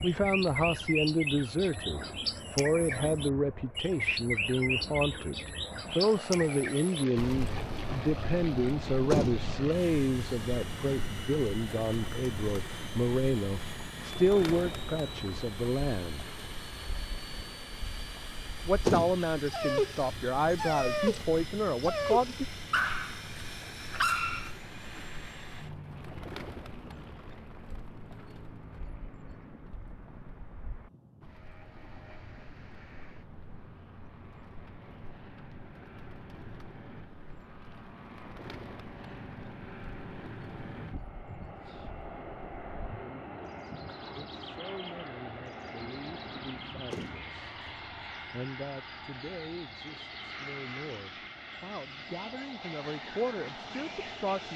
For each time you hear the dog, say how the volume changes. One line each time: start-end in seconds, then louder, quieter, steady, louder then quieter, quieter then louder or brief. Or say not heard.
19.4-25.1 louder.